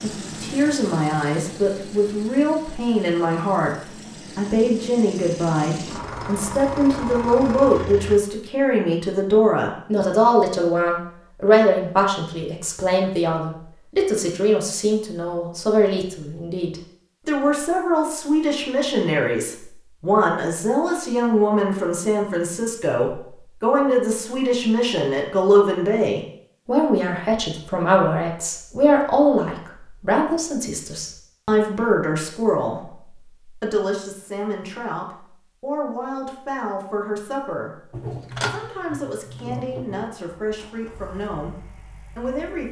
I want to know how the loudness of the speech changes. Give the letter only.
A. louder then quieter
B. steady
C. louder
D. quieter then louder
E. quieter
E.